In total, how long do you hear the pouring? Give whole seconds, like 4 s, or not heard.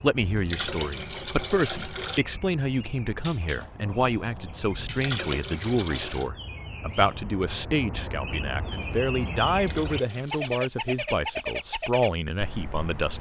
5 s.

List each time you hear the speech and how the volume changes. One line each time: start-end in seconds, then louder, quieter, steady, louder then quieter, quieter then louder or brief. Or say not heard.
0.0-13.1 steady.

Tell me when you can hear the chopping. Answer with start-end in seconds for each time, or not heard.
not heard.